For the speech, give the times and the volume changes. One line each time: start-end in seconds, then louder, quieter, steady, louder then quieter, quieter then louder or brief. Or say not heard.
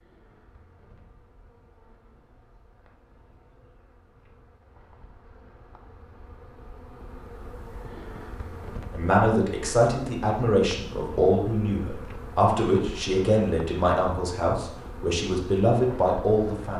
8.9-16.7 steady.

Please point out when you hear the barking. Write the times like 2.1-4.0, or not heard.
not heard.